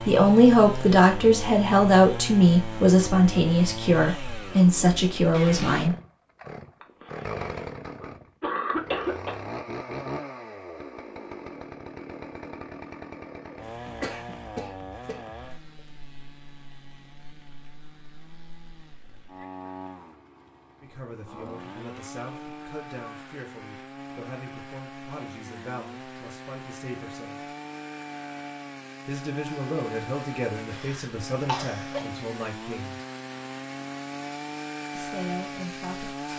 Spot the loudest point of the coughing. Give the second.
9 s.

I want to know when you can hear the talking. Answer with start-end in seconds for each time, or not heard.
0.1-6.0, 20.8-27.4, 29.1-33.0, 35.0-36.1.